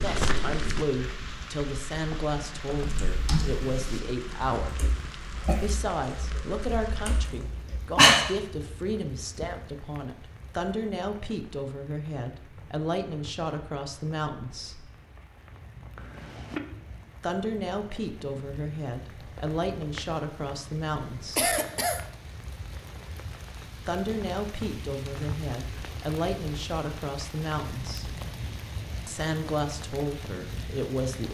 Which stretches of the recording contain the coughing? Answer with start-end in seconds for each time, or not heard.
5.0-5.9, 15.9-16.6, 21.4-22.1.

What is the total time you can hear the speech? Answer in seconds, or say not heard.
25 s.